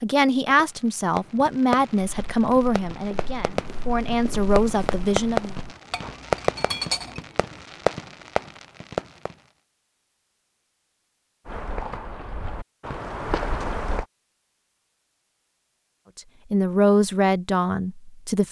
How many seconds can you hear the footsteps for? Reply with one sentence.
The footsteps can be heard for 7 seconds in total.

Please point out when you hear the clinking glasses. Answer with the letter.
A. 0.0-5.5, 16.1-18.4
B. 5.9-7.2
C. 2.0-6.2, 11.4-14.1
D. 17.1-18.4
B.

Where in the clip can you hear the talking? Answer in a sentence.
The talking can be heard from 0.0 to 5.5 s and from 16.1 to 18.4 s.